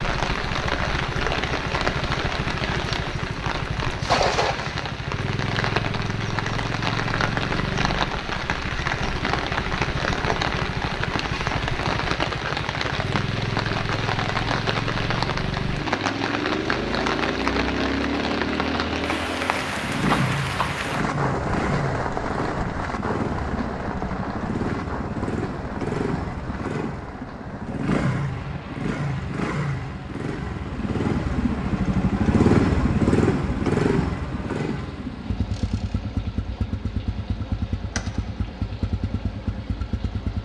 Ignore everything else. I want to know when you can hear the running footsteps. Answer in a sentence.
The running footsteps can't be heard in this clip.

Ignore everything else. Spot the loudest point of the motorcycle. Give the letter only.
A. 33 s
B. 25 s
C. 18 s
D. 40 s
A.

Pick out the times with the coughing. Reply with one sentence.
You can't hear the coughing here.